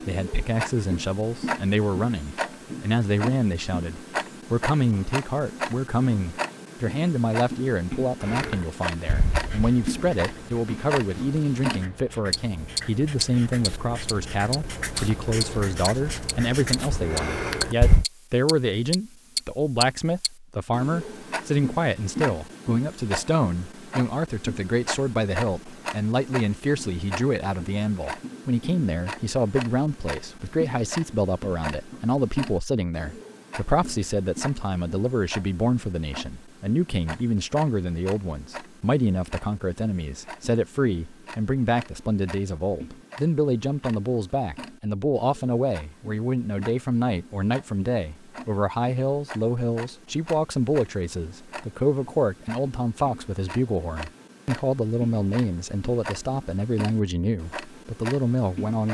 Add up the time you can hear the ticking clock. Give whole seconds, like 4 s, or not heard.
59 s.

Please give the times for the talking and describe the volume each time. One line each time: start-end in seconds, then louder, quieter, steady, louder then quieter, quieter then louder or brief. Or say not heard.
0.1-58.8 steady.